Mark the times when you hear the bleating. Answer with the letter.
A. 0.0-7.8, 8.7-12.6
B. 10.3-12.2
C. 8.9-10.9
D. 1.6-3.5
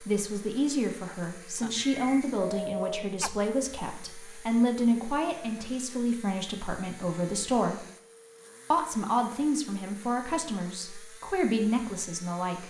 D.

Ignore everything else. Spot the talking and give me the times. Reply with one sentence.
The talking can be heard from 0.0 to 7.8 s and from 8.7 to 12.6 s.